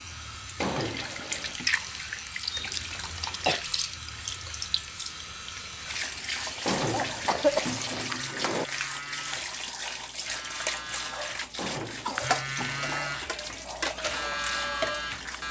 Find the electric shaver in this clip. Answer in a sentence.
You can hear the electric shaver from 0.0 to 15.4 s.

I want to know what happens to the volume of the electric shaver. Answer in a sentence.
The volume of the electric shaver goes up.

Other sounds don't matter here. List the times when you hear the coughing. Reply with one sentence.
You can hear the coughing from 2.5 to 3.6 s, from 6.9 to 7.8 s and from 12.1 to 13.3 s.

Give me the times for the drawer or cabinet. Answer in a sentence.
You can hear the drawer or cabinet from 0.6 to 1.7 s, from 6.7 to 8.7 s and from 11.6 to 13.0 s.